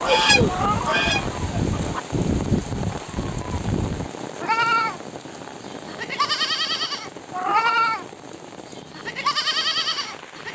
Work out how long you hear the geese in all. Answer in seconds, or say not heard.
2 s.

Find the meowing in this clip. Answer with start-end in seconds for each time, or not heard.
0.5-1.0, 7.3-7.8.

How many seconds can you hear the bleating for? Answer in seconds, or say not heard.
10 s.